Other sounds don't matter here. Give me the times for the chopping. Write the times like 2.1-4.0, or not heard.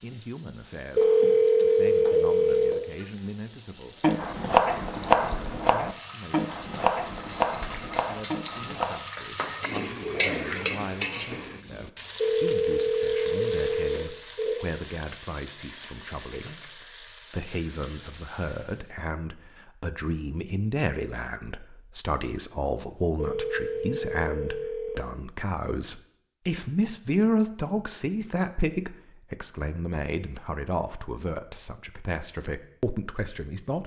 4.0-9.0.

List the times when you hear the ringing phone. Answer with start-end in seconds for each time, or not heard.
0.9-2.8, 12.2-14.7, 23.1-25.0.